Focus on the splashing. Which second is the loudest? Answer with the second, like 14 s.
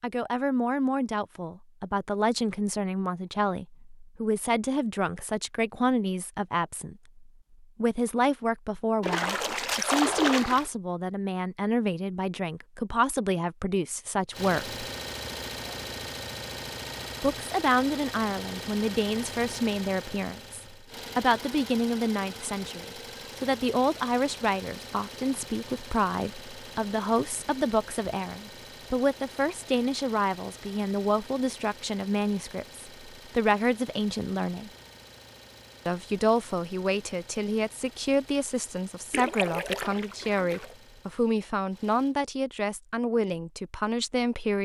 10 s.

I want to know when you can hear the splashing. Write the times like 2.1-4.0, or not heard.
9.0-10.7, 39.1-40.8.